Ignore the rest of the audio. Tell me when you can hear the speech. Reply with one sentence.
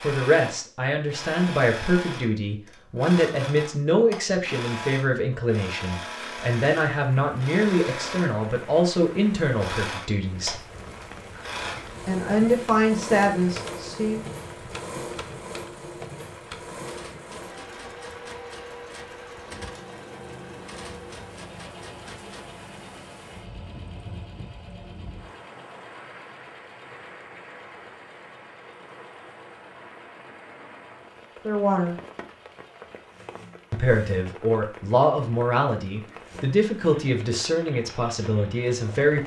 The speech can be heard from 0.0 to 10.6 s, from 12.1 to 14.2 s, from 31.4 to 31.9 s and from 33.7 to 39.2 s.